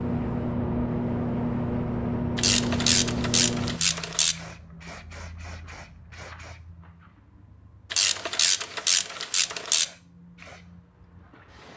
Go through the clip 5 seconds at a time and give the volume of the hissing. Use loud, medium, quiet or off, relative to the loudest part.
loud, quiet, quiet.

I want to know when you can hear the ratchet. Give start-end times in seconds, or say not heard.
2.4-4.3, 7.9-9.8.